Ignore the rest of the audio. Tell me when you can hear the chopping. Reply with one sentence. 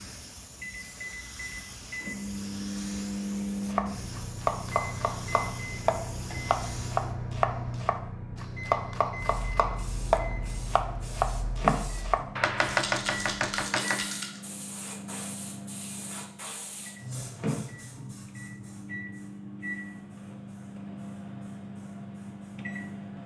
You can hear the chopping from 3.6 to 14.0 s.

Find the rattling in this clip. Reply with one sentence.
The rattling can be heard from 12.7 to 14.4 s.